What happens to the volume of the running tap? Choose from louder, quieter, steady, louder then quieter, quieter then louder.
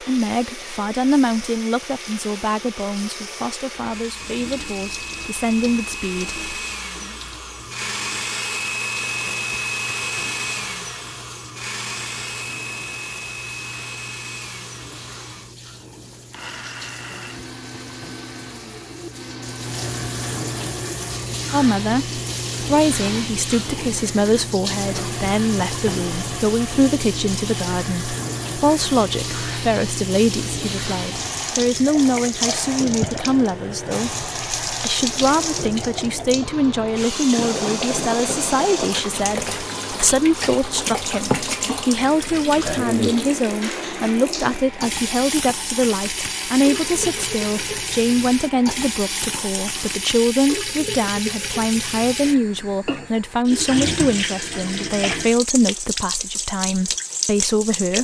louder.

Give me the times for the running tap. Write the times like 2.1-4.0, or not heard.
0.0-57.9.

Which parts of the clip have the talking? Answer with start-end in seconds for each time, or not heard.
0.1-6.3, 21.5-57.9.